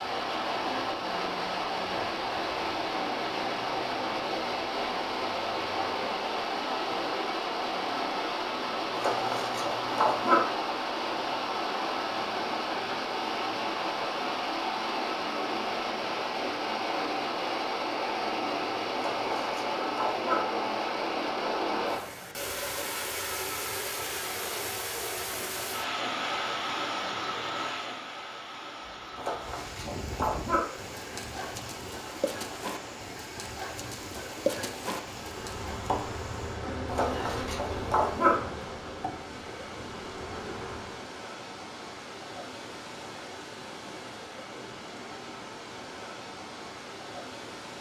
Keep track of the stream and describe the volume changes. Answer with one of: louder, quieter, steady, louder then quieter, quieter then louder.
quieter.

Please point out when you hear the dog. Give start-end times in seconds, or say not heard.
8.9-10.4, 18.9-20.4, 29.1-30.6, 36.9-38.4.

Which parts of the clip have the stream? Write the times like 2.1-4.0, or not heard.
0.0-47.7.